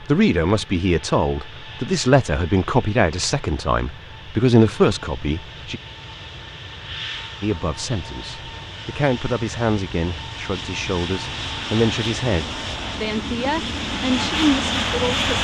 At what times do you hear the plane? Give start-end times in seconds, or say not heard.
0.0-15.3.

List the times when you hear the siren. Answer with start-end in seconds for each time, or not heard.
not heard.